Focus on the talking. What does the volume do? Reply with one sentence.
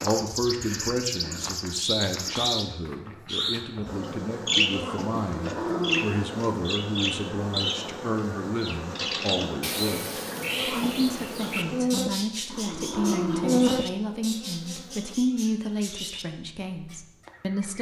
The volume of the talking stays about the same.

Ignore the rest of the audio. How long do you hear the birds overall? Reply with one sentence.
The birds can be heard for 18 seconds in total.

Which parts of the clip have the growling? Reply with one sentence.
You can hear the growling from 5.1 to 6.2 s and from 12.4 to 13.8 s.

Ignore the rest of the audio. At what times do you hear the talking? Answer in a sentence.
The talking can be heard from 0.0 to 17.7 s.